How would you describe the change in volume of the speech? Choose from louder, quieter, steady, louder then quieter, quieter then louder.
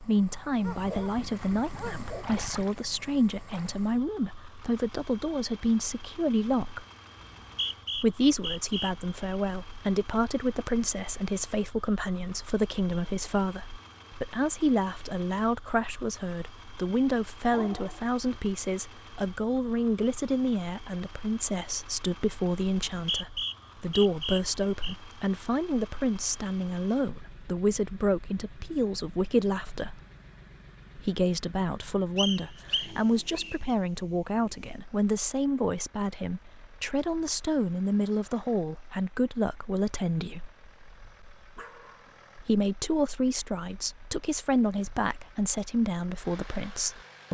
steady.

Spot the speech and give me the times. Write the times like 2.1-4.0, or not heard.
0.0-6.8, 8.0-30.0, 30.9-40.5, 42.4-47.2.